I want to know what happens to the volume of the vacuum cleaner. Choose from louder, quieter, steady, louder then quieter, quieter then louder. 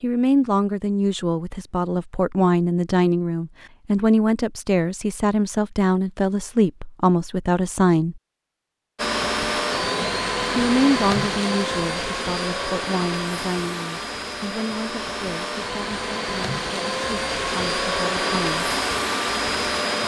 quieter then louder.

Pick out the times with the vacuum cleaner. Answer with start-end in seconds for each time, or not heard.
8.9-20.0.